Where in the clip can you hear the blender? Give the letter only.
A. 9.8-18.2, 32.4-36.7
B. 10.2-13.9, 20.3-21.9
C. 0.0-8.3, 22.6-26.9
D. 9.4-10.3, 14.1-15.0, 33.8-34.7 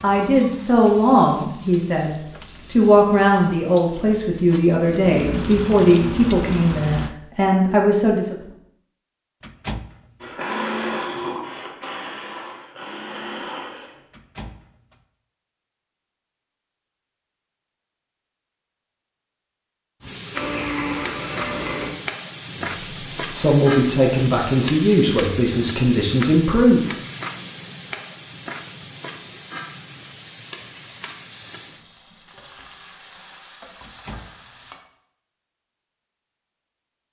B.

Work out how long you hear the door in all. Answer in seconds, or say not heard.
3 s.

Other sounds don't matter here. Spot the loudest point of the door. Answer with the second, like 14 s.
10 s.